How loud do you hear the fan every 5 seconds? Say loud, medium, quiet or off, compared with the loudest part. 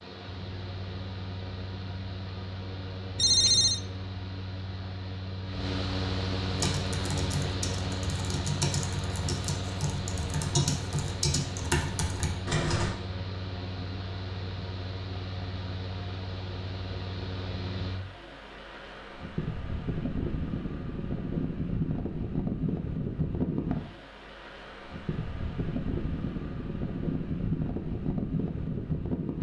medium, loud, medium, medium, loud, loud.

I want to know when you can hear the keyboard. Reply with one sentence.
You can hear the keyboard from 6.5 to 12.9 s.